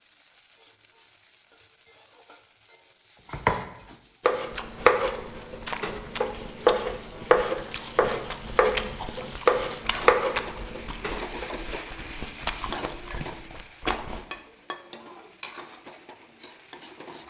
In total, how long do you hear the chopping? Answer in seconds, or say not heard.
8 s.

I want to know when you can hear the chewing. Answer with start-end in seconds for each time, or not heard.
4.5-14.2.